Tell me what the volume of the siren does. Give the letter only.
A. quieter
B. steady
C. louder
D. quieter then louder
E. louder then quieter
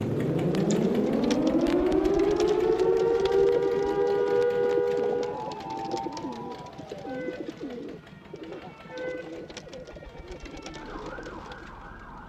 A.